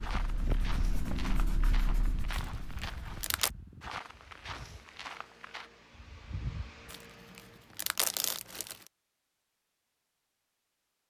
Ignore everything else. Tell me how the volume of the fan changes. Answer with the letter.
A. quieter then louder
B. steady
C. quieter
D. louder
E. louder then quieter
A.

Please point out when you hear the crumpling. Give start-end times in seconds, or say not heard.
2.3-3.5, 6.9-8.9.